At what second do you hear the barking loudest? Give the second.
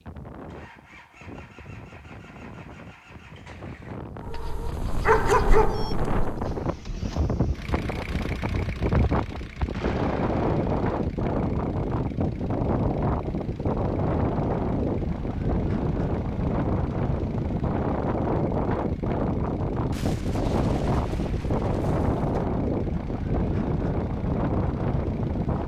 5 s.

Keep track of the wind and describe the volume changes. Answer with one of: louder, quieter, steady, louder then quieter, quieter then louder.
louder.